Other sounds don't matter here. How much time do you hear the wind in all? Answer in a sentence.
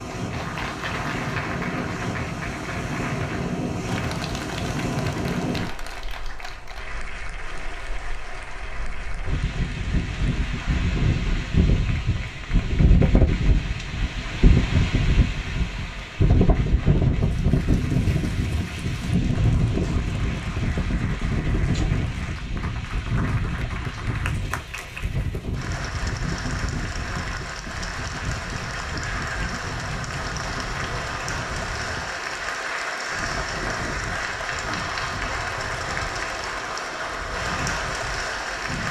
The wind can be heard for 39 seconds in total.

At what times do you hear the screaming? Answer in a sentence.
You can't hear the screaming here.